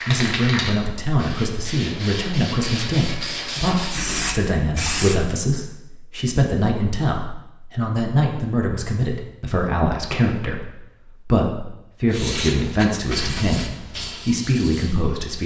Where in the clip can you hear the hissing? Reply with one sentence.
The hissing can be heard from 0.0 to 5.3 s and from 12.1 to 15.4 s.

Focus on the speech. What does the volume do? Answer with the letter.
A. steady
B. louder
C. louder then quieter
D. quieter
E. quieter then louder
A.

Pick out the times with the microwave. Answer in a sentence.
The microwave can't be heard in this clip.